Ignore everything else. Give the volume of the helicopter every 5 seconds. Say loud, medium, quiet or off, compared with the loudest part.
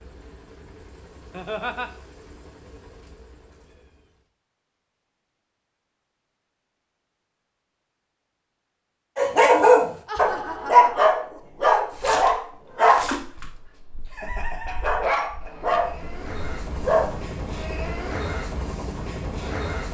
quiet, off, off, loud.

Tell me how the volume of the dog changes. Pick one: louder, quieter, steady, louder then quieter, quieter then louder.
quieter.